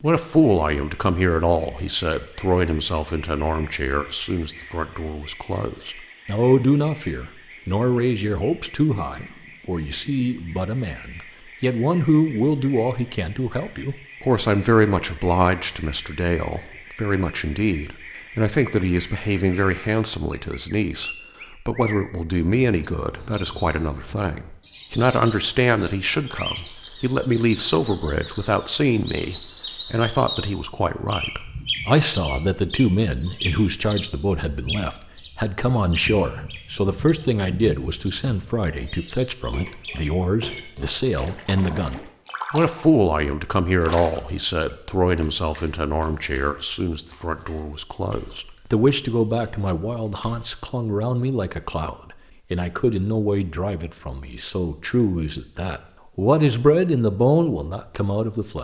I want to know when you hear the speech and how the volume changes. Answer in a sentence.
The speech can be heard from 0.0 to 58.5 s, at a steady volume.